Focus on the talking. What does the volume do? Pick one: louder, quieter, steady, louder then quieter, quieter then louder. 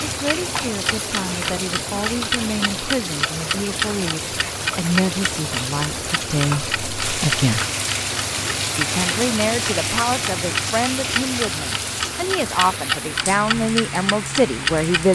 louder.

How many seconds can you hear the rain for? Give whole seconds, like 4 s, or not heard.
15 s.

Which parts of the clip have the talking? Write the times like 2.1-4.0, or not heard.
0.1-7.7, 8.8-15.1.